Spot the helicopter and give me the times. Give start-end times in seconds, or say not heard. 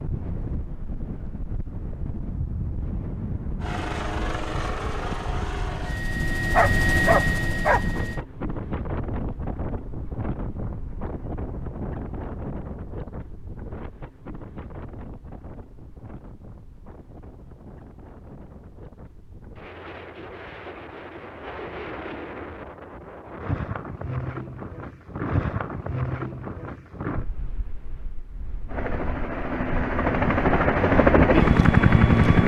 3.6-8.2, 28.6-32.4.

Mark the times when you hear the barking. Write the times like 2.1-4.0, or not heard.
6.5-7.8.